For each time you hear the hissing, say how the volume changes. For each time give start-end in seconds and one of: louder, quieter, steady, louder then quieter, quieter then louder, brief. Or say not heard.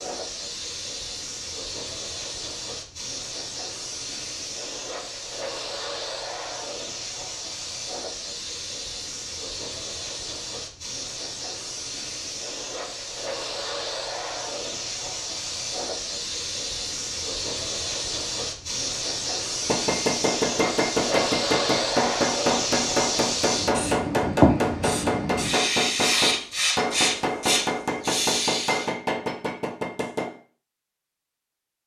0.0-28.9 louder.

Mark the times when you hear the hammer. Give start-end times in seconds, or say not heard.
19.6-30.3.